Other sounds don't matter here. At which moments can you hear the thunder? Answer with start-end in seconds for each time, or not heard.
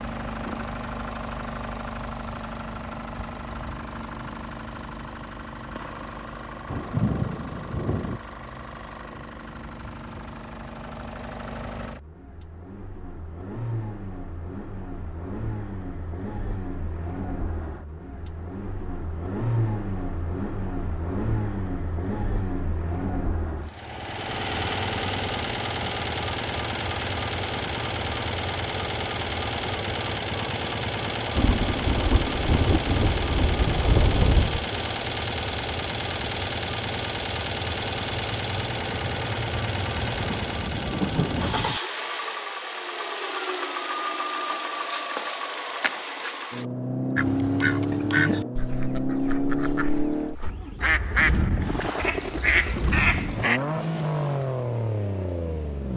6.7-8.2, 31.4-34.6, 40.1-41.8.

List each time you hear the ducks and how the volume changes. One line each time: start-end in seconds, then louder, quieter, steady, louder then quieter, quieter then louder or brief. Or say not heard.
47.1-53.6 quieter then louder.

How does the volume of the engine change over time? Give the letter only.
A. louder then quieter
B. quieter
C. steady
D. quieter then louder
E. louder
E.